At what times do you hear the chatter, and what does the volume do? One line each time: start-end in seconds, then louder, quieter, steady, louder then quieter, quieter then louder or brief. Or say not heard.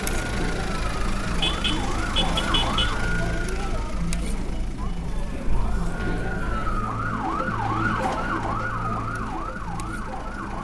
0.0-10.5 quieter.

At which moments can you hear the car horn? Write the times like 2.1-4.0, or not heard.
1.4-3.0.